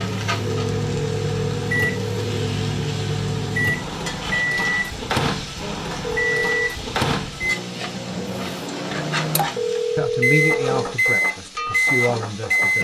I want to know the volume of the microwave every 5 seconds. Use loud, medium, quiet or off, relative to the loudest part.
medium, medium, loud.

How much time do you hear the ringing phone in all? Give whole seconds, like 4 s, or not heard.
4 s.